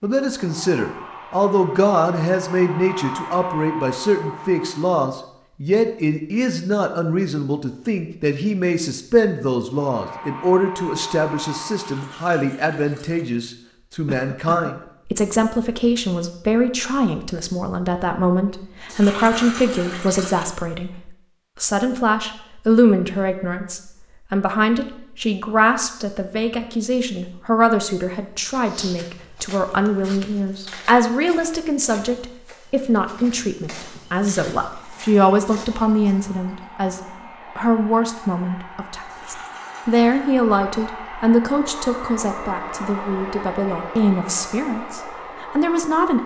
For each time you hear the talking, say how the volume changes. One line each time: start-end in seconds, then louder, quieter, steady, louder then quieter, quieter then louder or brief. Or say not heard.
0.0-46.2 steady.